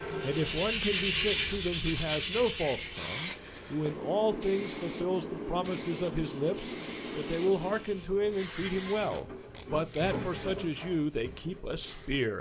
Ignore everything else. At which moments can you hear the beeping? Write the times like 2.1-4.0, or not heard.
not heard.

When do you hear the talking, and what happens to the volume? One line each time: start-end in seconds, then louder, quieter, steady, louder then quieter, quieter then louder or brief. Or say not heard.
0.2-12.3 steady.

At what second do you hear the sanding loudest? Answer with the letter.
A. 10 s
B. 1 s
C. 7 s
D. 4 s
B.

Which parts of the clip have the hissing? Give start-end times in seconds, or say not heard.
2.5-12.3.